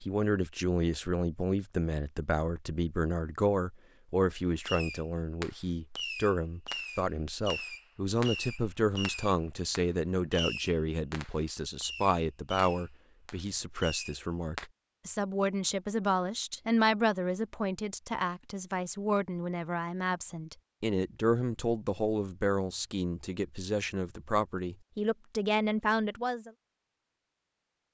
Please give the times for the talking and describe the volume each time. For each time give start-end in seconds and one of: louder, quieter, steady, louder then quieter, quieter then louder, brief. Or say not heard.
0.0-26.5 steady.